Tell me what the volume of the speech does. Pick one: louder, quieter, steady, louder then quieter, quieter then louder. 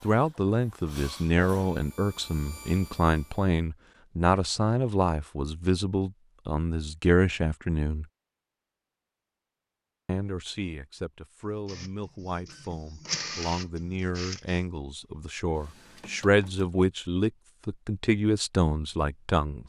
quieter then louder.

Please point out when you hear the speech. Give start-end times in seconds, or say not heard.
0.0-8.1, 10.1-19.6.